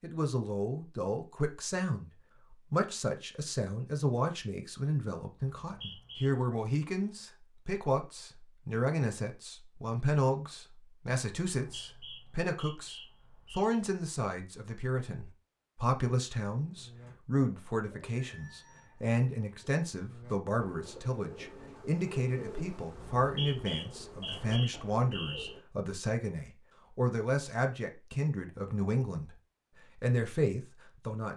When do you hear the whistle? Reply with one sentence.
You can hear the whistle from 5.6 to 6.3 s, from 11.5 to 13.7 s and from 22.9 to 25.6 s.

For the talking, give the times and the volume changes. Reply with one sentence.
You can hear the talking from 0.0 to 29.4 s, at a steady volume; and briefly from 29.9 to 31.3 s.